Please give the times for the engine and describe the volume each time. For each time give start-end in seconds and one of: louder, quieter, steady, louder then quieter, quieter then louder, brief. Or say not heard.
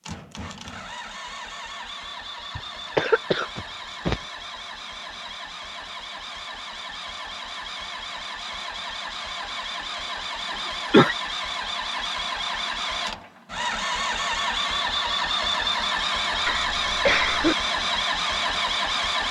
0.0-19.2 louder.